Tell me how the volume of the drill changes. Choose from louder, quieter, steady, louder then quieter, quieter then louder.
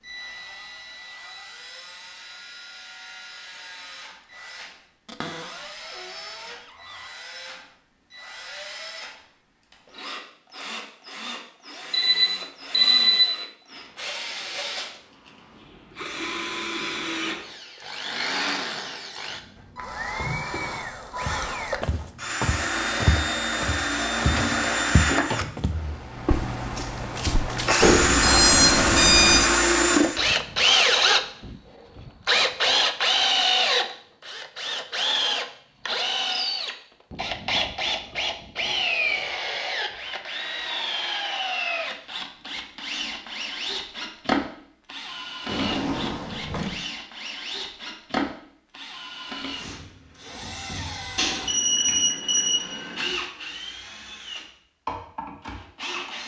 louder then quieter.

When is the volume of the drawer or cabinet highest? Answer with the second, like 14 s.
46 s.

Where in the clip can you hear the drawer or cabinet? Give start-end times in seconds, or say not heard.
5.0-7.1, 24.1-25.6, 45.5-46.8.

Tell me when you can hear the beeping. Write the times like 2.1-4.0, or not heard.
11.9-13.2, 27.8-29.4, 51.1-53.0.